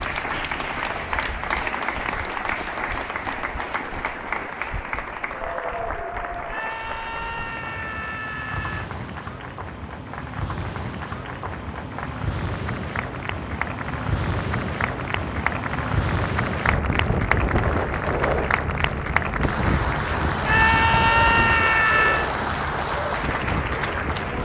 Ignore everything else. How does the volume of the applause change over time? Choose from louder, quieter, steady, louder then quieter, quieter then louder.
quieter then louder.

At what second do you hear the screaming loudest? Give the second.
21 s.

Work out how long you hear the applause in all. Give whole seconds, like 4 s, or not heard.
24 s.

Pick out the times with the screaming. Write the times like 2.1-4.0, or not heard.
6.5-8.9, 20.4-22.3.